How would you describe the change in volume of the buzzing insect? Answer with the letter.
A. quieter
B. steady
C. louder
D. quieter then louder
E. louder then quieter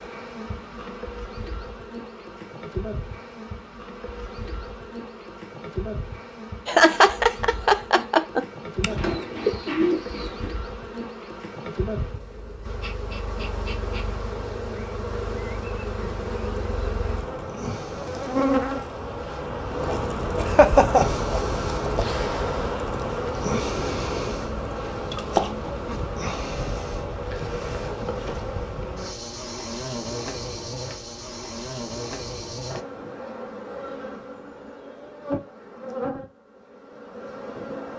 E.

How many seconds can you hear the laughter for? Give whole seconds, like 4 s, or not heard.
3 s.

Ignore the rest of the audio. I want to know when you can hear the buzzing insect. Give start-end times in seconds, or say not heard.
0.0-37.9.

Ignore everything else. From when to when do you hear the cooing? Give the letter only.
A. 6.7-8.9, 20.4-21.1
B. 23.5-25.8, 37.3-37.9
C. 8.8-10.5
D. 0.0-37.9
C.